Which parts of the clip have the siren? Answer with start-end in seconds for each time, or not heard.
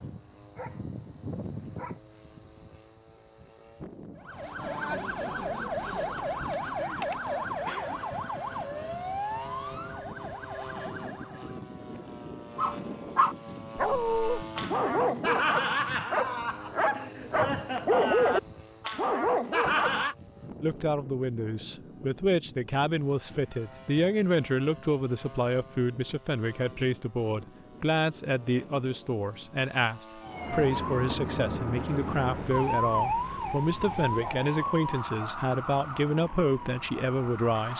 4.2-11.6, 30.2-37.7.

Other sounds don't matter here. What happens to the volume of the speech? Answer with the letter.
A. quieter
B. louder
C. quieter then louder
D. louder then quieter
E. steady
E.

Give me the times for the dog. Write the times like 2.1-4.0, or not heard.
0.0-2.0, 12.6-20.1.